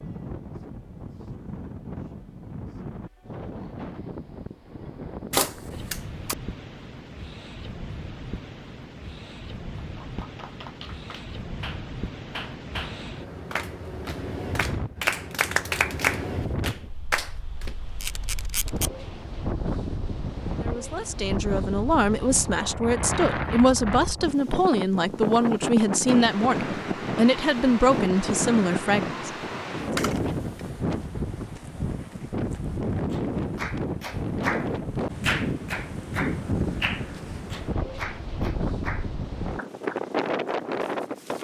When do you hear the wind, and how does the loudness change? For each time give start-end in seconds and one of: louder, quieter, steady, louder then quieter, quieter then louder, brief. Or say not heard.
0.0-41.3 louder.